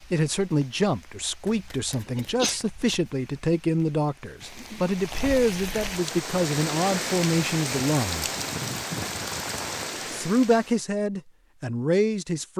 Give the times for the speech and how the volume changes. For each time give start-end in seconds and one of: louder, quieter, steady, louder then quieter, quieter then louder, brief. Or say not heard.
0.1-8.3 steady
10.1-12.5 brief.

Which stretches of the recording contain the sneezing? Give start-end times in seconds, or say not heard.
1.9-2.6.